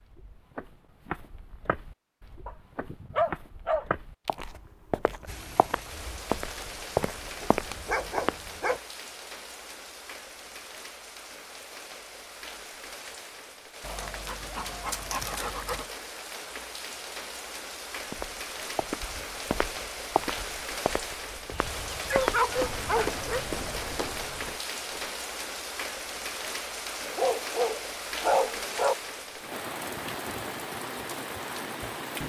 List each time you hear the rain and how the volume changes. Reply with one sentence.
You can hear the rain from 5.2 to 32.2 s, getting louder.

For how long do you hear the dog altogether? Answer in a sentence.
The dog can be heard for 9 seconds in total.